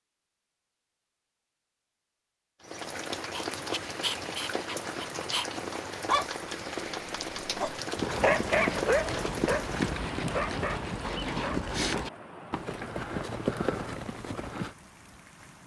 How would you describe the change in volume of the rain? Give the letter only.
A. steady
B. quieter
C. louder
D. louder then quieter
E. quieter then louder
B.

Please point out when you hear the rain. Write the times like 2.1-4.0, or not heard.
2.6-15.6.